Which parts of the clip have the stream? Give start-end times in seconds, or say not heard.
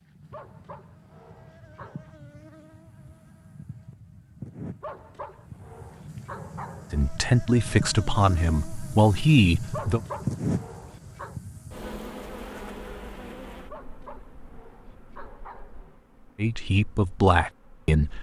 not heard.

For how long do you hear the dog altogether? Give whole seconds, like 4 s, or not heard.
8 s.